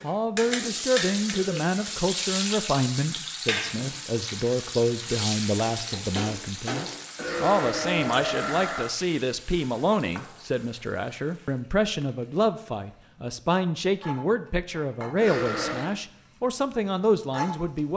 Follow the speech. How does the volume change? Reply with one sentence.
The loudness of the speech stays about the same.